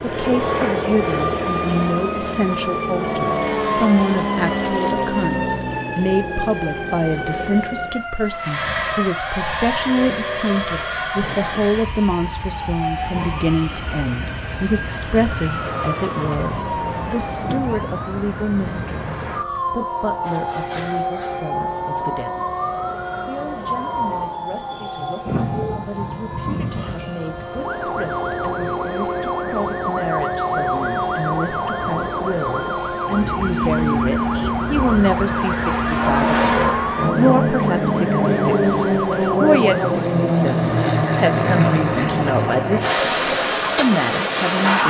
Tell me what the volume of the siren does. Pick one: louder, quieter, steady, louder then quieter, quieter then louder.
steady.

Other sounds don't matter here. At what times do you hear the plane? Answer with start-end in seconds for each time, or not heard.
0.0-44.8.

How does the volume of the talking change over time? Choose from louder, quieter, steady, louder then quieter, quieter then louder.
quieter then louder.